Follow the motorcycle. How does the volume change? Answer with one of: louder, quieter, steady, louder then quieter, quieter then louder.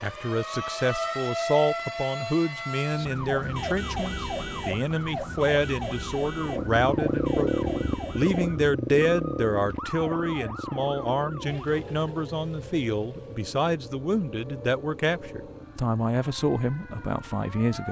quieter.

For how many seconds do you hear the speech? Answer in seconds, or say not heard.
18 s.